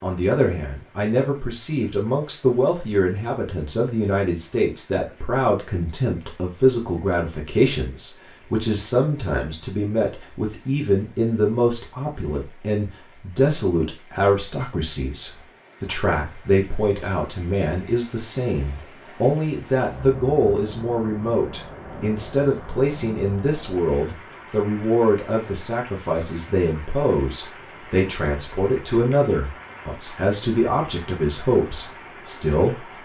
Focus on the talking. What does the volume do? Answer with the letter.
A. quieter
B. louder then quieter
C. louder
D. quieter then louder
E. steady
E.